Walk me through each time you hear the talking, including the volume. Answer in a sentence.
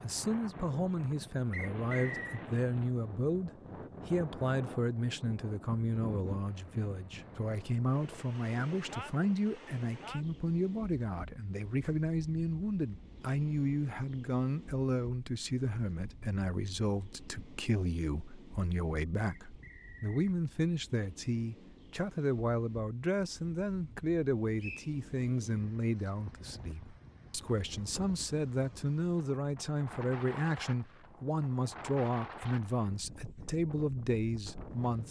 You can hear the talking from 0.0 to 35.0 s, at a steady volume.